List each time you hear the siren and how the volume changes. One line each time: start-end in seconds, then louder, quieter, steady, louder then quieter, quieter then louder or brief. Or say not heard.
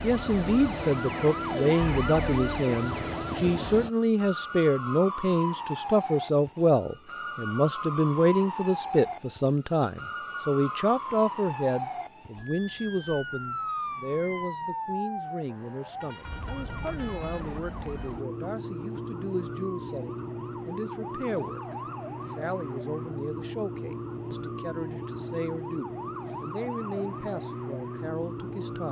0.0-28.8 steady.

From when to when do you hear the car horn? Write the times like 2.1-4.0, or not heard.
16.0-17.6.